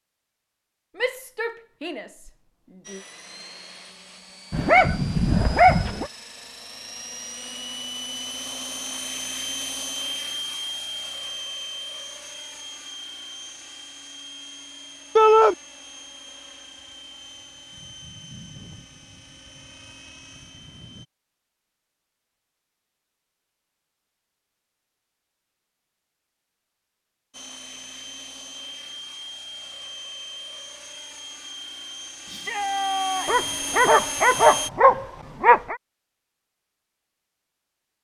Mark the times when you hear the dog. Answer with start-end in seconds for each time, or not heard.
4.5-6.1, 33.2-35.8.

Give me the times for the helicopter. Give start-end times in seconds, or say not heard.
2.8-21.1, 27.3-34.7.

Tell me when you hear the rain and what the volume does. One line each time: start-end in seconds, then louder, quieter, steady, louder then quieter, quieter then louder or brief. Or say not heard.
not heard.